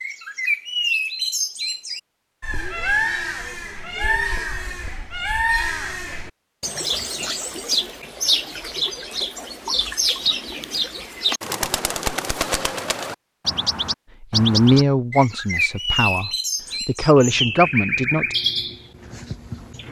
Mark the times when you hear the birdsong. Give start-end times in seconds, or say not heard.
0.0-19.8.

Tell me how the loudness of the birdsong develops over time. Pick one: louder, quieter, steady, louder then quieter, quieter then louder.
steady.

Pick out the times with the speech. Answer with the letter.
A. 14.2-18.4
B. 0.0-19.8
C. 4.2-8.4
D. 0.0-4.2
A.